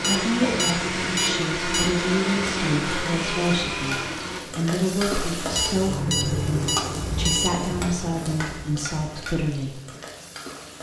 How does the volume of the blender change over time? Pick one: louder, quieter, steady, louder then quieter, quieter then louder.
steady.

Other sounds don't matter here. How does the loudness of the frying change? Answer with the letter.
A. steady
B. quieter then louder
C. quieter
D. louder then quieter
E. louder
D.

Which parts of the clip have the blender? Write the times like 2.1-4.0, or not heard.
0.0-4.4.